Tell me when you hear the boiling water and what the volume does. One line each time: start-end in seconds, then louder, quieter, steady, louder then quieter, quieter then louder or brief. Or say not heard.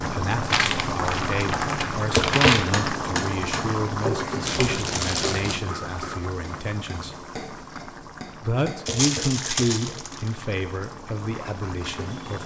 0.0-12.4 quieter.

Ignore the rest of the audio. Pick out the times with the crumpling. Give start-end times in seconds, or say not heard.
0.5-2.6, 4.5-5.6, 8.8-10.3.